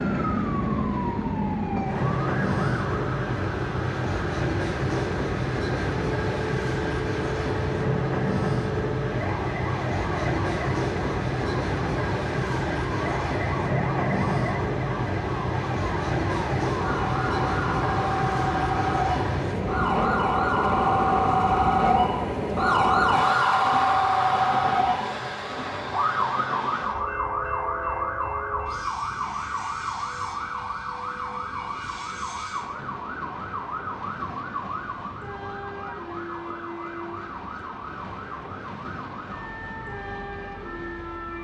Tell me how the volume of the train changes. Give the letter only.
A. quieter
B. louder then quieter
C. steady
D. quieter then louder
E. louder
A.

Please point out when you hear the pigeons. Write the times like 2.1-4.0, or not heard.
not heard.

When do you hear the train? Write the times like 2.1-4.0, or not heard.
0.0-41.3.